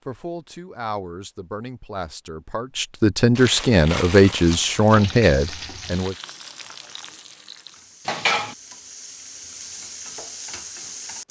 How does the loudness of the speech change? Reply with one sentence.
The volume of the speech goes up.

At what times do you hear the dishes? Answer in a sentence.
You can hear the dishes from 8.1 to 8.6 s.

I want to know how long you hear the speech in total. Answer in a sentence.
The speech can be heard for 6 seconds in total.